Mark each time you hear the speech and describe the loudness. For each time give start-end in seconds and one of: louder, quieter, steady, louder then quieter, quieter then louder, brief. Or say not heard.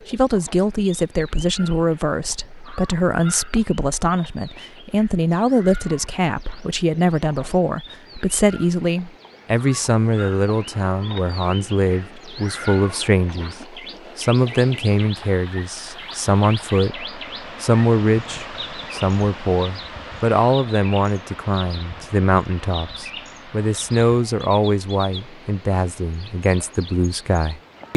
0.1-27.9 steady.